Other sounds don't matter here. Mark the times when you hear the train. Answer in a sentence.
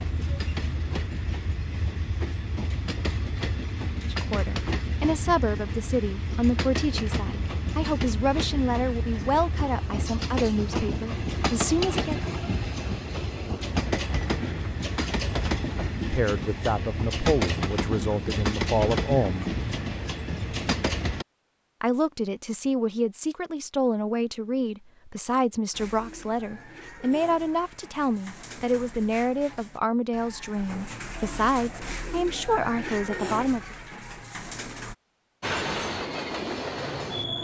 You can hear the train from 0.0 to 21.2 s and from 35.4 to 37.3 s.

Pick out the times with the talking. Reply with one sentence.
The talking can be heard from 4.0 to 12.2 s, from 15.9 to 19.6 s and from 21.8 to 33.8 s.